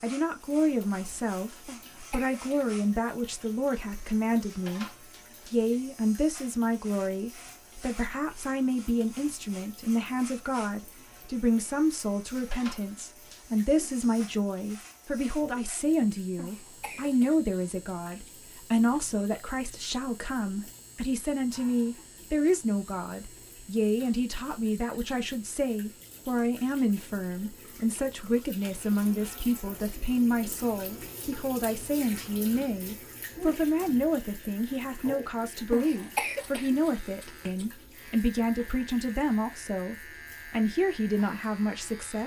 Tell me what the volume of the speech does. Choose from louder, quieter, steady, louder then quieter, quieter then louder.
steady.